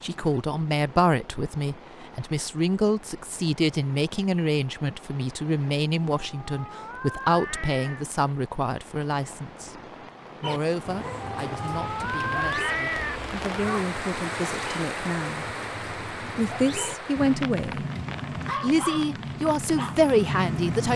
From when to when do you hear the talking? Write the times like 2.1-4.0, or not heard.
0.0-9.8, 10.4-15.4, 16.4-17.9, 18.5-20.9.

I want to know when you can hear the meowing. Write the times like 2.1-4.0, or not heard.
6.2-8.1, 11.3-13.8.